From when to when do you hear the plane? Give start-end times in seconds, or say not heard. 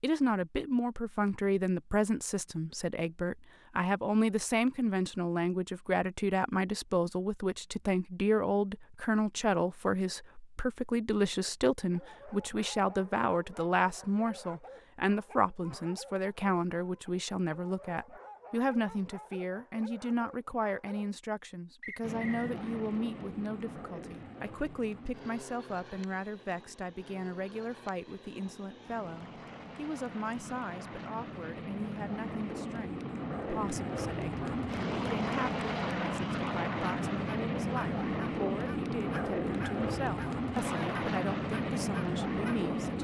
22.0-43.0.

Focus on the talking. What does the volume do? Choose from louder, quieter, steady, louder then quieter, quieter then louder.
quieter.